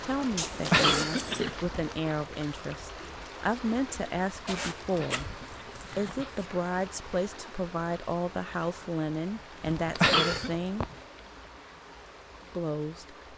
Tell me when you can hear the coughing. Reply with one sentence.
The coughing can be heard from 0.7 to 1.6 s, from 4.9 to 6.5 s and from 9.9 to 10.5 s.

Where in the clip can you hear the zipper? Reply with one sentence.
The zipper can be heard from 0.3 to 1.6 s, from 4.5 to 6.5 s and from 9.6 to 11.0 s.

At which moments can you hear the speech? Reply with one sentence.
You can hear the speech from 0.0 to 5.3 s, from 6.0 to 10.8 s and from 12.5 to 13.2 s.